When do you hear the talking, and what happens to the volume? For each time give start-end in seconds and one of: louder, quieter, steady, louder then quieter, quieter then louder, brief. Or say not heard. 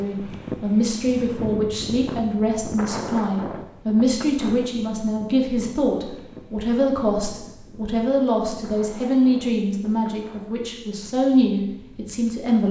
0.0-12.6 steady.